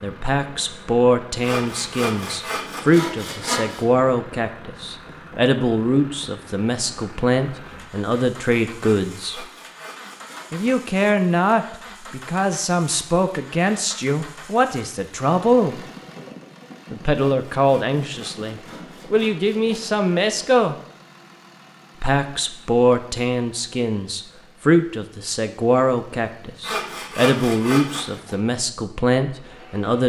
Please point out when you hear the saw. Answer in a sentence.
The saw can be heard from 1.4 to 3.9 s, from 8.9 to 10.7 s, from 17.1 to 19.9 s and from 26.6 to 28.2 s.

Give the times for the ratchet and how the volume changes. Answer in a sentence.
The ratchet can't be heard in this clip.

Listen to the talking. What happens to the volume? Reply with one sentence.
The loudness of the talking stays about the same.